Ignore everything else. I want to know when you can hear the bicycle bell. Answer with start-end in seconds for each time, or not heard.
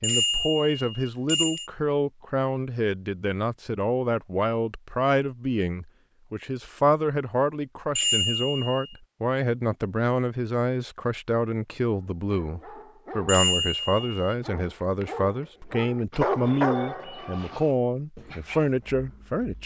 0.0-1.7, 8.0-8.9, 13.2-14.2.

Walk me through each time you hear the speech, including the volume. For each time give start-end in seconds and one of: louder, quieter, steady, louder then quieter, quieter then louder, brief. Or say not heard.
0.0-19.6 steady.